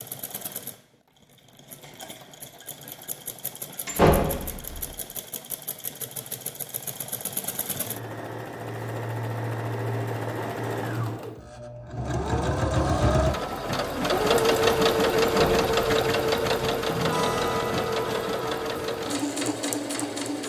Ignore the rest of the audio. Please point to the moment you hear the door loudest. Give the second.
4 s.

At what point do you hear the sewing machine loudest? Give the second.
15 s.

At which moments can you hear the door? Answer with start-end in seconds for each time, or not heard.
3.9-4.9, 15.2-15.7.